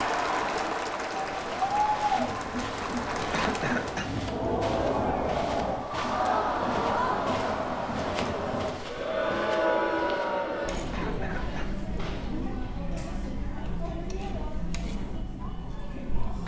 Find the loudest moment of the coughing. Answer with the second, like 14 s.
4 s.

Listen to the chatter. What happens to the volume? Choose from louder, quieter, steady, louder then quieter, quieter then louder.
quieter.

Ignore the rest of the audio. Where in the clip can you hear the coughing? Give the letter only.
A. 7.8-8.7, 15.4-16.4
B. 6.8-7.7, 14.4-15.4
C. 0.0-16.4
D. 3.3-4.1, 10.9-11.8
D.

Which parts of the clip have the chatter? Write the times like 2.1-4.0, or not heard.
0.0-16.4.